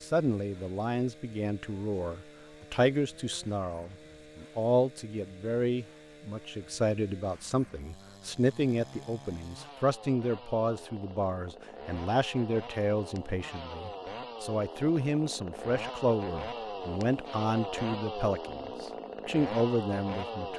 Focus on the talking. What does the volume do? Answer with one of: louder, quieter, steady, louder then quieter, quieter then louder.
steady.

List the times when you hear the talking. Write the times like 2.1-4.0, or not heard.
0.0-20.5.